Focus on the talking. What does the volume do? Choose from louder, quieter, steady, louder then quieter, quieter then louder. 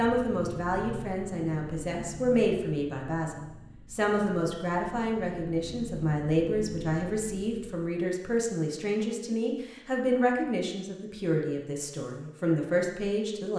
steady.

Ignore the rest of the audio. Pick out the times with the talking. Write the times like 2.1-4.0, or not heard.
0.0-13.5.